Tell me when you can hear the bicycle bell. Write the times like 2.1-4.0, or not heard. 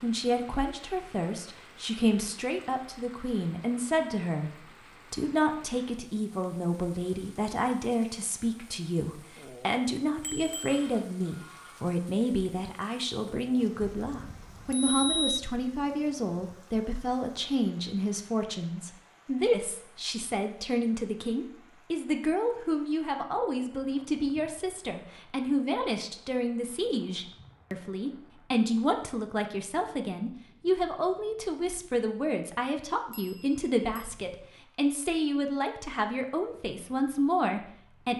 10.2-10.8, 13.8-15.4, 33.1-34.0.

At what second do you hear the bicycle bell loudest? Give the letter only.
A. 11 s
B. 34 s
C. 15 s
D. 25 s
C.